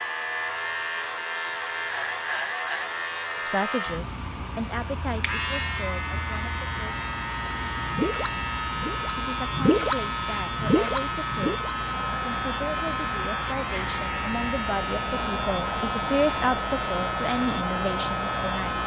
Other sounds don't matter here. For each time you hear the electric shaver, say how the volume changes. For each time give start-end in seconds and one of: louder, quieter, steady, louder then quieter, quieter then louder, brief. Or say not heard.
0.0-18.8 steady.